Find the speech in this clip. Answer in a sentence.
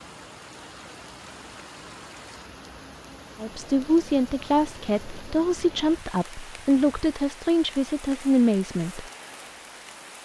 You can hear the speech from 3.4 to 9.1 s.